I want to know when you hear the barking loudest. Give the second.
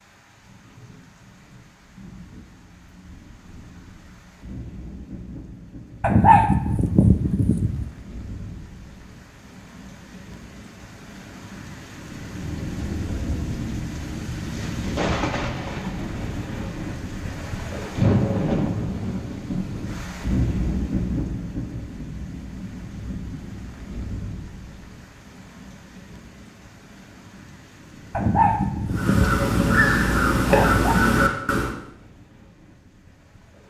6 s.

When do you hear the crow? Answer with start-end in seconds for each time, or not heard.
28.9-31.8.